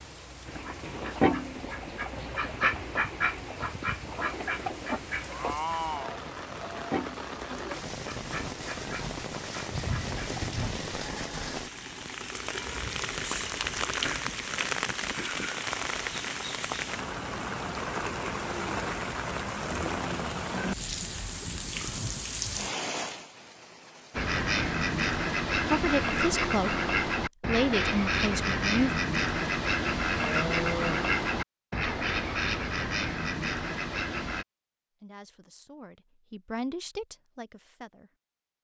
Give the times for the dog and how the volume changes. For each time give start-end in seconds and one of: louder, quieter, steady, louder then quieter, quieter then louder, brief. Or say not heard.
not heard.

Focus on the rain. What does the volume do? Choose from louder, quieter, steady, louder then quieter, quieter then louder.
louder.